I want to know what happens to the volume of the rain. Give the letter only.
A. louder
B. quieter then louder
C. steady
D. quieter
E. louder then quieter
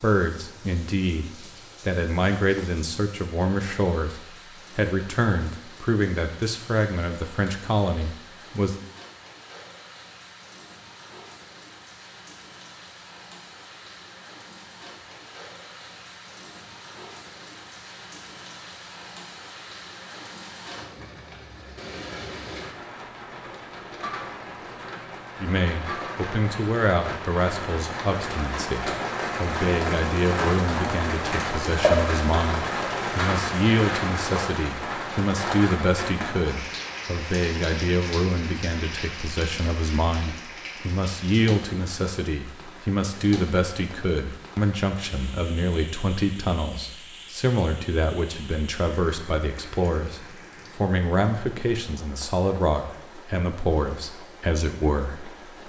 E.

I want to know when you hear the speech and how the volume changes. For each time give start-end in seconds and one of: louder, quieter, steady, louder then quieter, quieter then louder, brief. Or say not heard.
0.0-8.8 steady
25.4-55.6 steady.